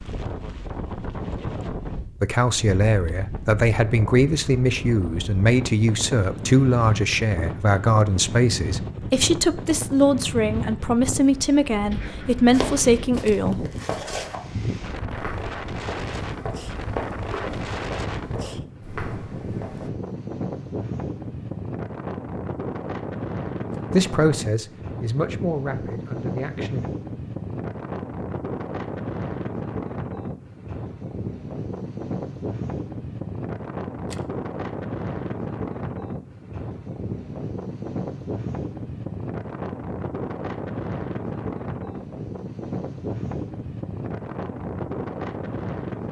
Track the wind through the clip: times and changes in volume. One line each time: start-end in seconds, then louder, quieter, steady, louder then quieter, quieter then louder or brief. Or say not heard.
0.0-46.0 steady.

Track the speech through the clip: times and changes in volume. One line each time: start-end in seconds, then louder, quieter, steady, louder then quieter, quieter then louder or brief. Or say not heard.
2.2-13.7 steady
23.9-26.9 brief.